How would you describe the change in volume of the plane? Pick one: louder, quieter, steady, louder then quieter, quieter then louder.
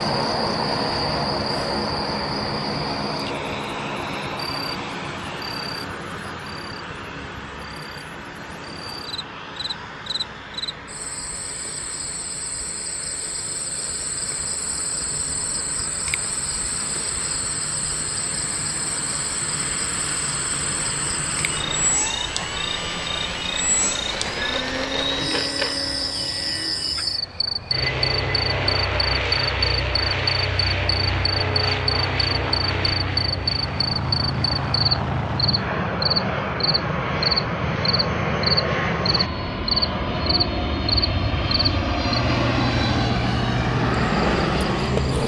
quieter then louder.